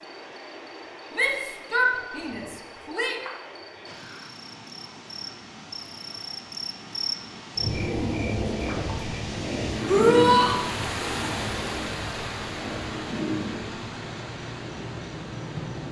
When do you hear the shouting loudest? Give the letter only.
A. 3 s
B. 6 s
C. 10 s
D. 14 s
C.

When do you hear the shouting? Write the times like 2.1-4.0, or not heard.
1.1-3.1, 9.8-10.6.